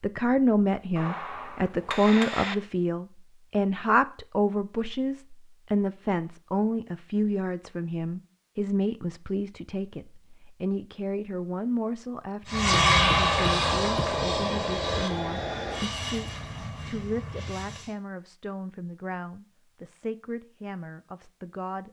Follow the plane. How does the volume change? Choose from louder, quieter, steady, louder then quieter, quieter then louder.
quieter.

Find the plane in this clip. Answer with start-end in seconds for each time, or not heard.
12.4-17.9.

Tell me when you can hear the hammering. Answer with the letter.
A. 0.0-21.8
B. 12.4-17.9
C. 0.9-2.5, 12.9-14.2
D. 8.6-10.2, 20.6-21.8
C.